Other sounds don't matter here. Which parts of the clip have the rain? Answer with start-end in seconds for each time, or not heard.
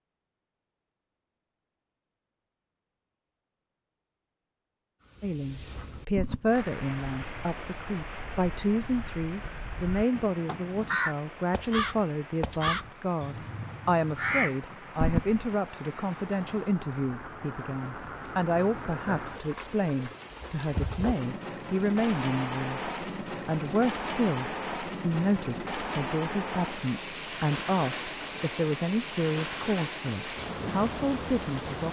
6.5-31.8.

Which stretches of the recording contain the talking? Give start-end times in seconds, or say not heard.
5.2-22.8, 23.4-31.8.